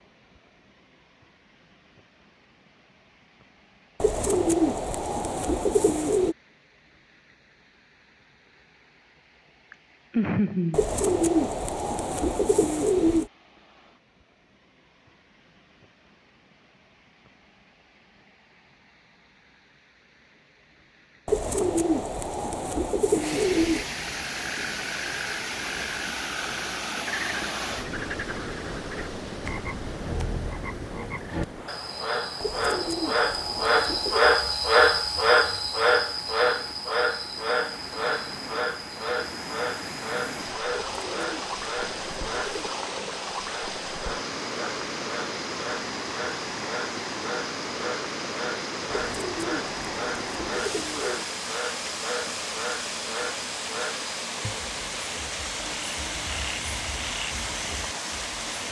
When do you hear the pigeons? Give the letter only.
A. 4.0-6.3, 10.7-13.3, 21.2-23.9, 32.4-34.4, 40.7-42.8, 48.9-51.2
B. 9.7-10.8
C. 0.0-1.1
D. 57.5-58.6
A.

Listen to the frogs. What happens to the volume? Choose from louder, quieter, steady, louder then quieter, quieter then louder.
louder then quieter.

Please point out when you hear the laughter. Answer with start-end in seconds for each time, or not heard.
9.7-10.8.